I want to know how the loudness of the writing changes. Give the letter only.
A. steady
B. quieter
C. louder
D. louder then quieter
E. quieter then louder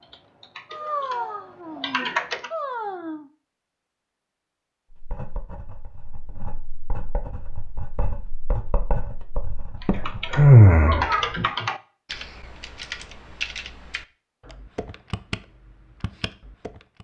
D.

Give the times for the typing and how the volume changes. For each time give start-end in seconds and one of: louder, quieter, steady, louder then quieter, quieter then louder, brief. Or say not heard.
0.0-2.5 brief
9.8-16.9 quieter.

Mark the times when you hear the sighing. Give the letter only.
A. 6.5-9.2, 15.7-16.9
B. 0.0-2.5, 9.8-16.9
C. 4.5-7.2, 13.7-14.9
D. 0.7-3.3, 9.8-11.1
D.